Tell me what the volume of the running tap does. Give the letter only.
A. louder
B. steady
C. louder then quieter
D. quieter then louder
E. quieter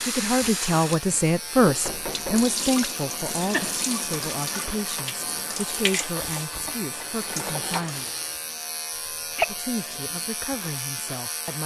B.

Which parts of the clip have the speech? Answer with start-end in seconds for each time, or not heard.
0.0-8.1, 9.4-11.6.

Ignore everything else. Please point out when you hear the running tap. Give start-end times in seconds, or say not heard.
0.0-8.4.